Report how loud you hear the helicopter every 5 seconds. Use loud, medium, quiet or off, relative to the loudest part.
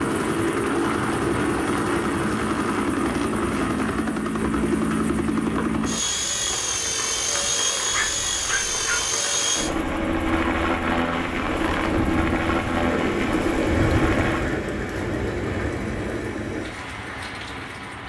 loud, loud, loud, quiet.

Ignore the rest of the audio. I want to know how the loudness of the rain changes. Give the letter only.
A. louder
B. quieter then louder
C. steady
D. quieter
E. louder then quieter
A.